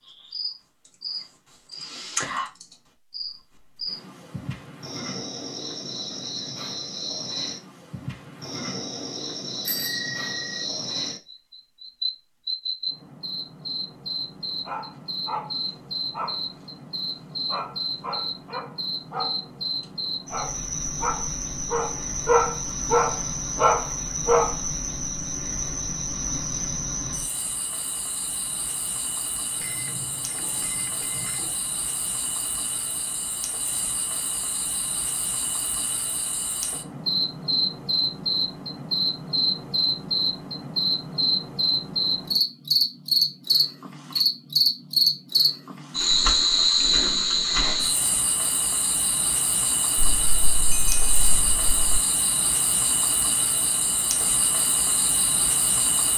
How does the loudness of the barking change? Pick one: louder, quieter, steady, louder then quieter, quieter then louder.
louder.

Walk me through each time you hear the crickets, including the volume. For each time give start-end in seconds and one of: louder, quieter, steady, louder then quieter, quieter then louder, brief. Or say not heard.
0.0-56.1 louder.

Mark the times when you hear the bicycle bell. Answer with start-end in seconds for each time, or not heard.
9.7-10.7, 29.6-31.5, 50.0-52.0.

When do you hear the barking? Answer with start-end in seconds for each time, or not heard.
14.6-24.6.